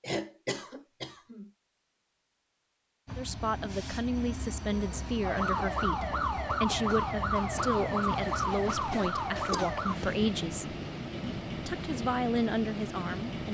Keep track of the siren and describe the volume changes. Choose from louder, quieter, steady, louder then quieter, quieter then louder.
steady.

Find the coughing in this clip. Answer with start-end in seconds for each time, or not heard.
0.0-1.5, 9.5-10.2.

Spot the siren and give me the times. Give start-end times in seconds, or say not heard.
5.2-9.9.